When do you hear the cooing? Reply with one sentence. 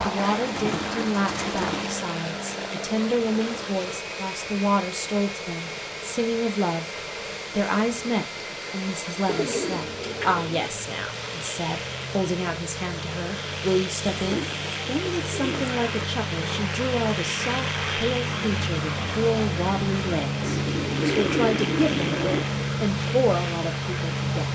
You can hear the cooing from 0.2 to 1.9 s, from 9.2 to 10.7 s, from 14.1 to 16.1 s and from 20.4 to 22.4 s.